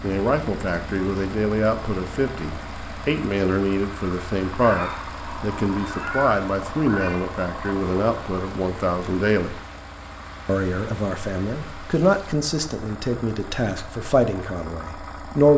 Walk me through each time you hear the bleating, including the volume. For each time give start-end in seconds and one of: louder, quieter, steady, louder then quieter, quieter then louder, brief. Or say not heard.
not heard.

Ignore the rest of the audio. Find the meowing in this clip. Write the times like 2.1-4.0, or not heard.
4.6-7.2.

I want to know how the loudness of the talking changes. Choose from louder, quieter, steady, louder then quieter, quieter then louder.
steady.